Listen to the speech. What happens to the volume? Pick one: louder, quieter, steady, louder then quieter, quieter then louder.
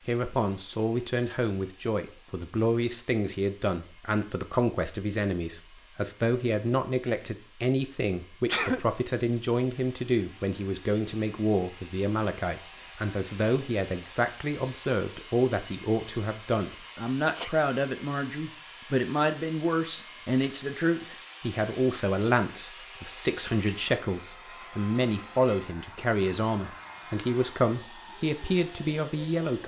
steady.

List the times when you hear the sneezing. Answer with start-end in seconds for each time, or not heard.
8.4-8.8, 16.8-17.5.